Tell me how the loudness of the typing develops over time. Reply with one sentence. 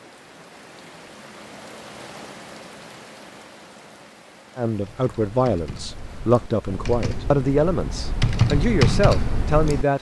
The loudness of the typing goes up.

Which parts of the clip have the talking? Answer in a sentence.
You can hear the talking from 4.5 to 9.9 s.